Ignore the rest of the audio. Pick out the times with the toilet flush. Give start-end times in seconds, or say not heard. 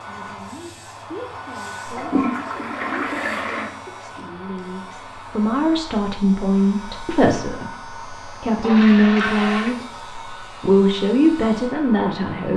1.9-3.7, 8.6-9.8.